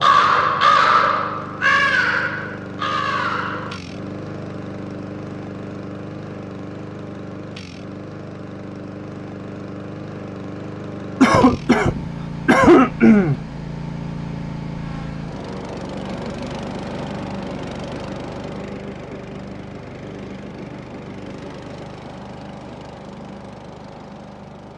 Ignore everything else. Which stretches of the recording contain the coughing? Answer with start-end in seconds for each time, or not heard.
11.2-13.3.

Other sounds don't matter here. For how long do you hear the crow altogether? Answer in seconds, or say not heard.
4 s.